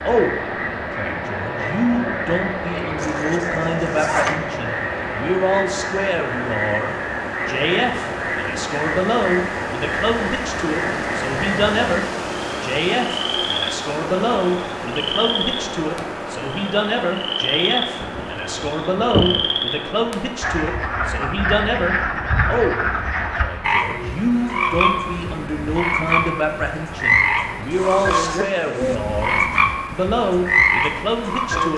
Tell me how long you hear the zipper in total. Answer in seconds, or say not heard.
4 s.